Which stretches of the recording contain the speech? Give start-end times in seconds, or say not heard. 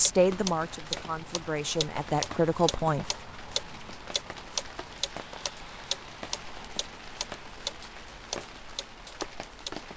0.0-3.0.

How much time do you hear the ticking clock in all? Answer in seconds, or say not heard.
10 s.